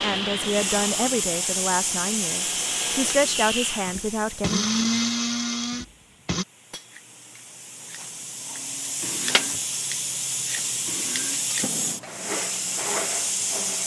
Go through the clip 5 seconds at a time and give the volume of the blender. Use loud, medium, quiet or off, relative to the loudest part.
loud, loud, medium.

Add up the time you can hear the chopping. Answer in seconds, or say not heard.
not heard.